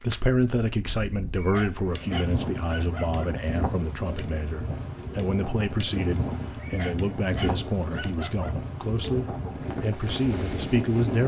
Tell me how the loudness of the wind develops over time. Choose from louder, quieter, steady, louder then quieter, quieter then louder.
steady.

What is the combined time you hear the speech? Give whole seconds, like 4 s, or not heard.
11 s.